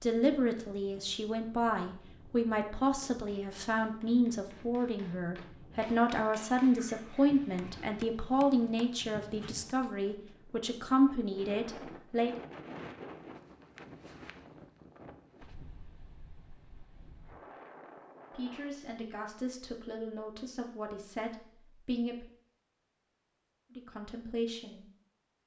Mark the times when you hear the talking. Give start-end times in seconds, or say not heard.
0.0-12.4, 18.3-22.2, 23.7-24.9.